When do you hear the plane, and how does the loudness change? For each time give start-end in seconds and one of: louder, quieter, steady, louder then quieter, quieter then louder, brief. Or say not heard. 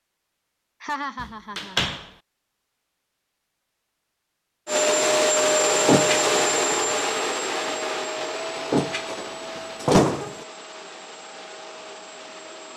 4.7-12.7 quieter.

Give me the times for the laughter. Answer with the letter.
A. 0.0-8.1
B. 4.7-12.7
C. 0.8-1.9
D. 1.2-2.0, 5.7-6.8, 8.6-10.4
C.